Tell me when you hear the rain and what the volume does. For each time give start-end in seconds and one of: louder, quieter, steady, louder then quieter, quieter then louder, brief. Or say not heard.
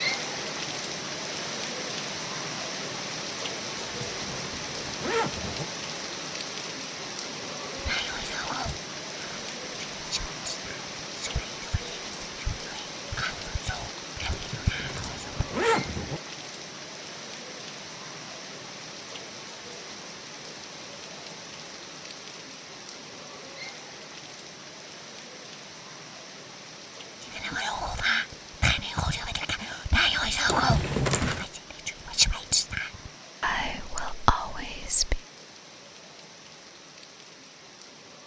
0.0-38.2 quieter.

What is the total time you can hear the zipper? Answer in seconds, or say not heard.
5 s.